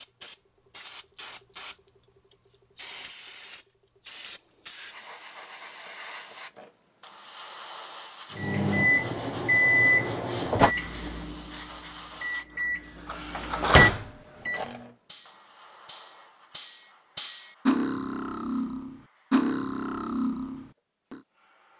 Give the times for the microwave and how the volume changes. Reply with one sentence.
The microwave can be heard from 8.3 to 14.6 s, getting quieter then louder.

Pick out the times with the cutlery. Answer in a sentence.
The cutlery can be heard from 13.1 to 21.2 s.